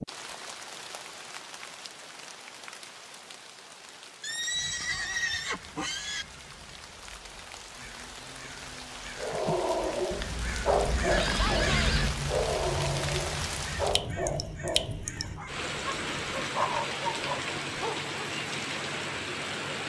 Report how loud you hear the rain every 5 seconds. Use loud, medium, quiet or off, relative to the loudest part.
medium, medium, loud, loud.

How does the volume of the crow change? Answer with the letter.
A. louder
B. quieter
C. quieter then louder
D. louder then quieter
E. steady
D.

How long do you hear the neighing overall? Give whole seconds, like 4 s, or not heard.
3 s.